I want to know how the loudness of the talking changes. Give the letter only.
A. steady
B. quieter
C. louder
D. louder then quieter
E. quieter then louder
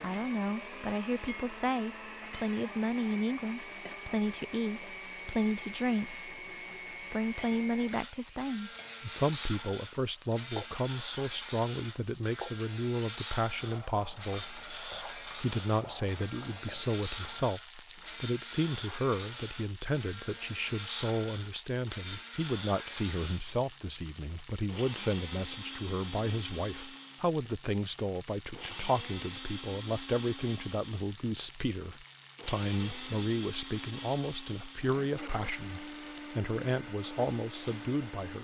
A.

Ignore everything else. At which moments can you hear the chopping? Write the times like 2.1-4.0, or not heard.
not heard.